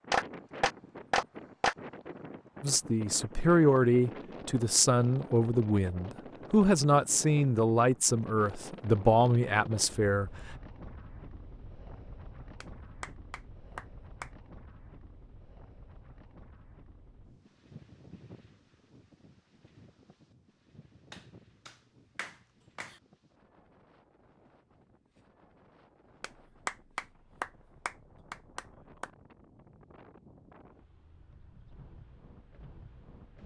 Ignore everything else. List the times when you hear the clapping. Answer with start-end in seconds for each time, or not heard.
0.1-1.8, 12.6-14.3, 21.1-22.9, 26.2-29.1.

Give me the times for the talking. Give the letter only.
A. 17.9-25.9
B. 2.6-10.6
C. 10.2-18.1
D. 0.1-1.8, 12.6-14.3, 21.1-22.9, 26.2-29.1
B.